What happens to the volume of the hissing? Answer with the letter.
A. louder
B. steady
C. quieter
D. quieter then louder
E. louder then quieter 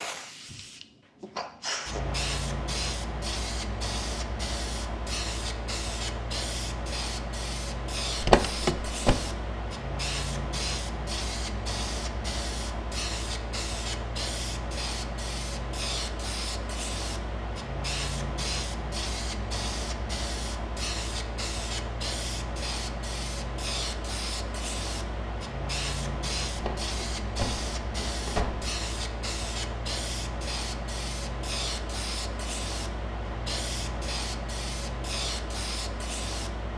B.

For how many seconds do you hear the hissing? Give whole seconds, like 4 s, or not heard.
37 s.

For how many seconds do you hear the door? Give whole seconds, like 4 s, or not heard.
3 s.